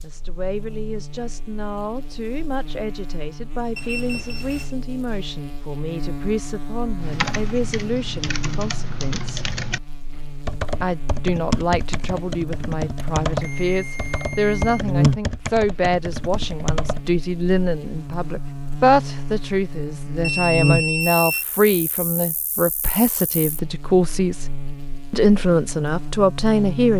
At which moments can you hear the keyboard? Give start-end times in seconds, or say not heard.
7.0-17.0.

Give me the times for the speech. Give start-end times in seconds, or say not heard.
0.0-9.3, 10.8-24.4, 25.1-26.9.